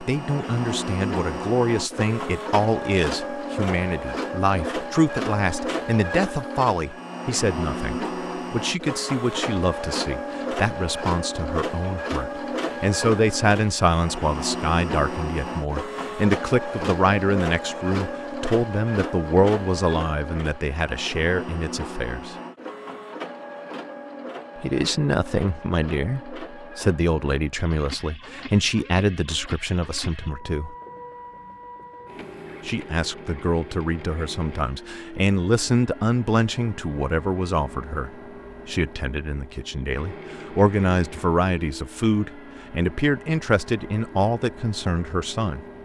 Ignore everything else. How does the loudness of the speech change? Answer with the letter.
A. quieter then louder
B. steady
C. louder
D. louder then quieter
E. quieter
B.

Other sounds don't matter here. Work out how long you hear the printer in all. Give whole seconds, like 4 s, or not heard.
46 s.